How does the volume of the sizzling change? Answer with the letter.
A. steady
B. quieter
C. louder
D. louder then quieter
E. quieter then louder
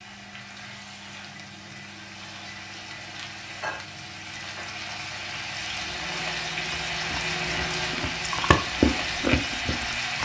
C.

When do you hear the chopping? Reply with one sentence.
You can't hear the chopping here.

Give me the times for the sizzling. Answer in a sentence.
You can hear the sizzling from 0.0 to 10.2 s.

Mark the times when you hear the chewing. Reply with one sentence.
The chewing can be heard from 6.7 to 10.2 s.